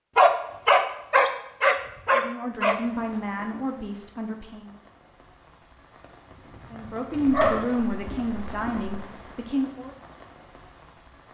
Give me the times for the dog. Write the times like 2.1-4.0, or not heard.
0.1-2.8, 7.2-8.9.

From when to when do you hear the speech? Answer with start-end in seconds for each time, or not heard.
2.1-4.8, 6.7-9.9.